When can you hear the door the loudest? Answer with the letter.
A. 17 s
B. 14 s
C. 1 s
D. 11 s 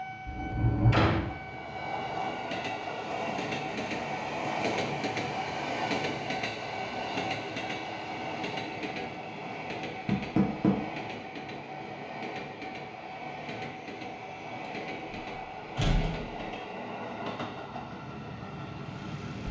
C.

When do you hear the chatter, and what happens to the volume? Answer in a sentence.
The chatter can't be heard in this clip.